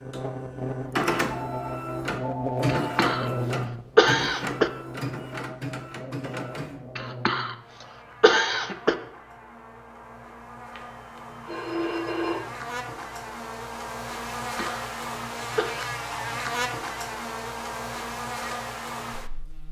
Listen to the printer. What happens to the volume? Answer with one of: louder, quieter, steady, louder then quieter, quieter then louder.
quieter.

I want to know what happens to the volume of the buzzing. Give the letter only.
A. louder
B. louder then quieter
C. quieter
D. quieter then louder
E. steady
D.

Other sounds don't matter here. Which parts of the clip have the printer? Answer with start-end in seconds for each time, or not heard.
0.0-7.0.